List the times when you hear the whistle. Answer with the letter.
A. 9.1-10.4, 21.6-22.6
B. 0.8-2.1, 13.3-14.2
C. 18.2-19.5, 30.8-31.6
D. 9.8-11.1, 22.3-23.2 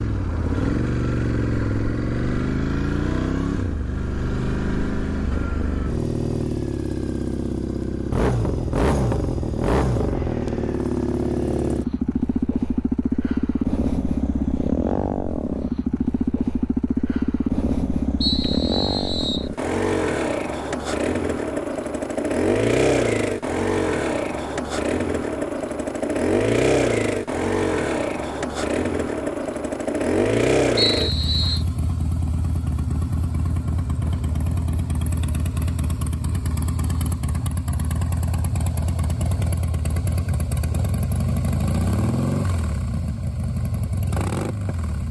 C.